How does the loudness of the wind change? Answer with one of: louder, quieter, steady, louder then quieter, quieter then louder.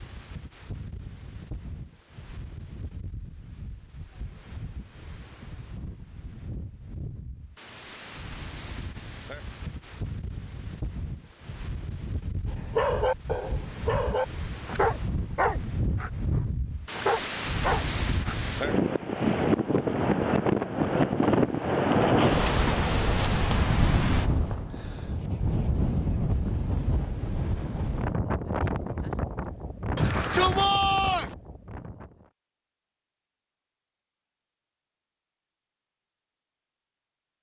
louder then quieter.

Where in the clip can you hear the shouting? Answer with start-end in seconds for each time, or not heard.
29.9-31.4.